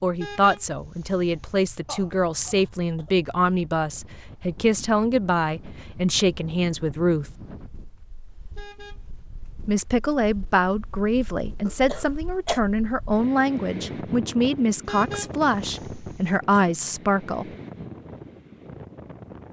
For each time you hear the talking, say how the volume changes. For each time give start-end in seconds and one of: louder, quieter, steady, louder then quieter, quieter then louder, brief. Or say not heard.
0.0-7.3 steady
9.7-17.5 steady.